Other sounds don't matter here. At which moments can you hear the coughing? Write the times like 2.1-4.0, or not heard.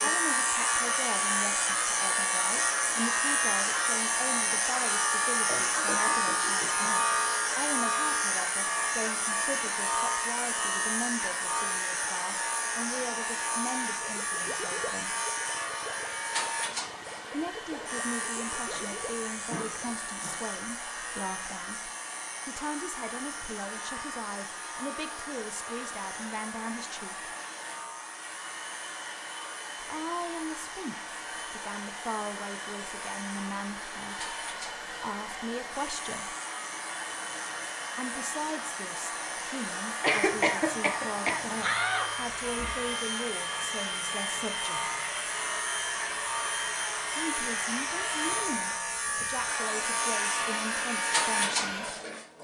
5.5-6.9, 18.6-20.6, 40.0-41.5.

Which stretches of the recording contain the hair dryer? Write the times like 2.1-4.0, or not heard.
0.0-52.3.